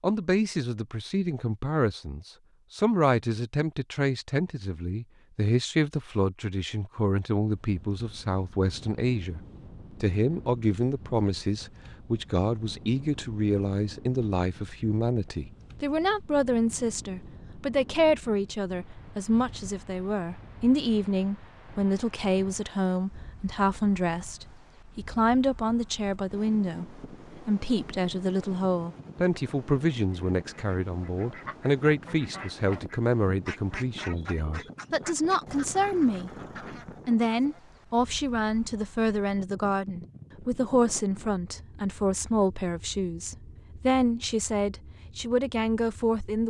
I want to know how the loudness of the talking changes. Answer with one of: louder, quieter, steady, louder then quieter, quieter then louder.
steady.